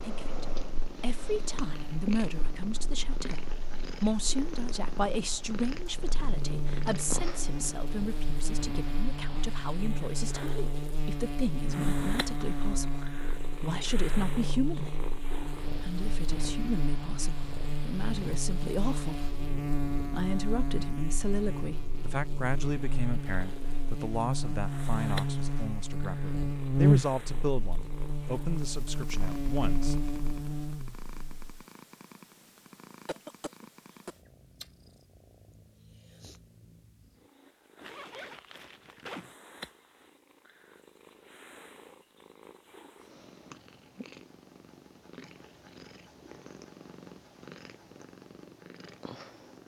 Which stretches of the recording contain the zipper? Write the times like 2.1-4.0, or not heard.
37.8-39.4.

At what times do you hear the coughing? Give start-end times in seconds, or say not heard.
33.0-34.1.